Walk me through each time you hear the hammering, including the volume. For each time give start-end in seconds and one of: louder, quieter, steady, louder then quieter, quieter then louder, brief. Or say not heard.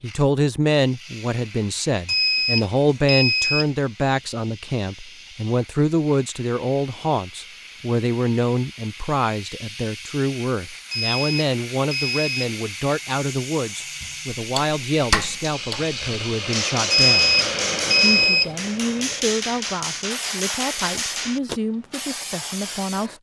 14.4-21.6 steady.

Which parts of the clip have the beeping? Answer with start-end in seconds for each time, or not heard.
2.0-3.6, 10.9-12.5, 16.9-18.5.